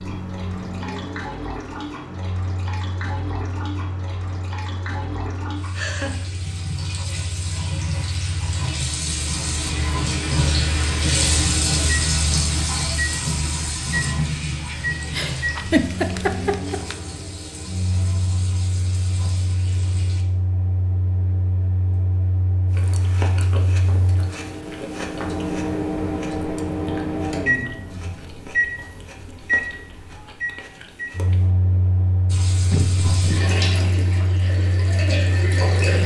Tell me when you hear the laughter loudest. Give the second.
16 s.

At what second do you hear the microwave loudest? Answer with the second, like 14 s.
27 s.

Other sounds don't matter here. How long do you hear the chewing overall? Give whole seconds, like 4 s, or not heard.
9 s.